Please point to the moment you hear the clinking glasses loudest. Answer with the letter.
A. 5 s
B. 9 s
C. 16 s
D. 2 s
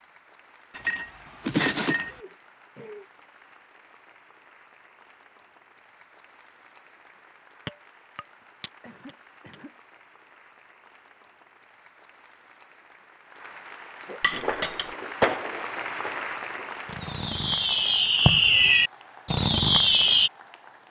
D.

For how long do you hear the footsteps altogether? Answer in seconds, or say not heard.
not heard.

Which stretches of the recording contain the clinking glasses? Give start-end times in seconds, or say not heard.
0.8-2.2, 7.7-9.6, 14.2-14.9.